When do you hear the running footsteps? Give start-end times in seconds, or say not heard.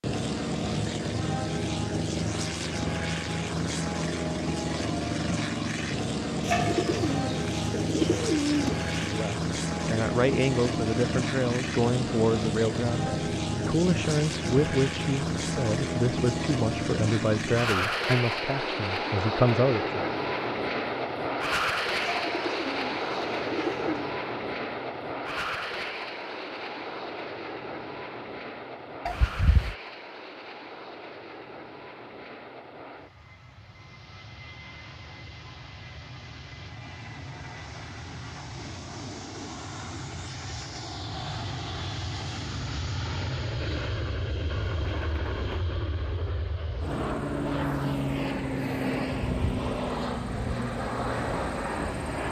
not heard.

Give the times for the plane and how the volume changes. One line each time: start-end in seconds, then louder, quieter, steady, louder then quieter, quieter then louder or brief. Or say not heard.
0.0-52.2 quieter then louder.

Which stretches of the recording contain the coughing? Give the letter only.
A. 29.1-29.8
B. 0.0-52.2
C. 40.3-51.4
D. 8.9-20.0
A.